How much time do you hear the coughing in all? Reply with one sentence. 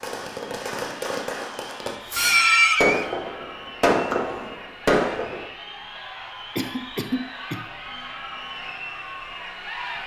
The coughing can be heard for 2 seconds in total.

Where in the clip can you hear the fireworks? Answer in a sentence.
You can hear the fireworks from 0.0 to 5.5 s.